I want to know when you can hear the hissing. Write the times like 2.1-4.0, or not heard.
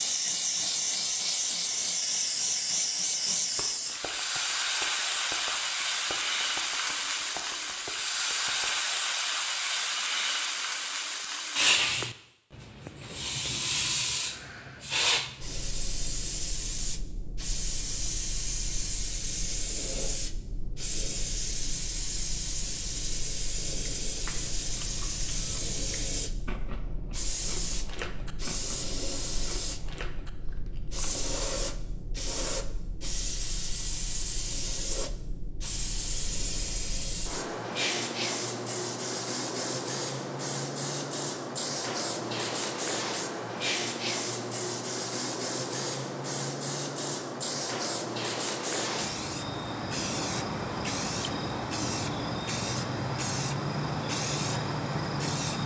0.0-55.6.